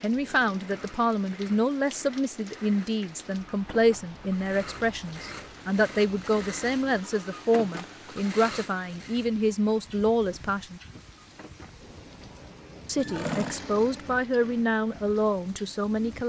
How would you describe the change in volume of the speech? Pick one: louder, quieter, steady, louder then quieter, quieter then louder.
steady.